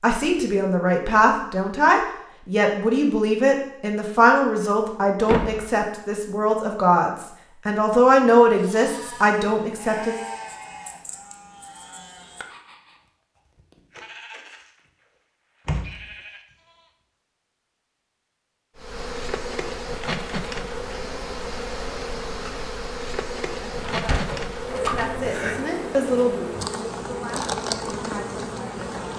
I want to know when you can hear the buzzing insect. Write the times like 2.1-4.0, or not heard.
18.8-29.1.